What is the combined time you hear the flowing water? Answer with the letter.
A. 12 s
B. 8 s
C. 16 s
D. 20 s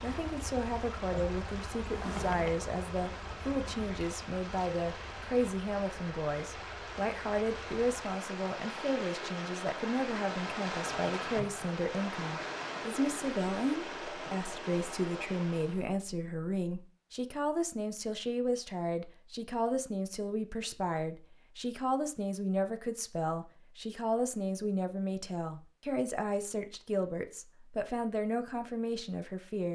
C.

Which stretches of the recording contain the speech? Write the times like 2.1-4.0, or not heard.
0.0-29.7.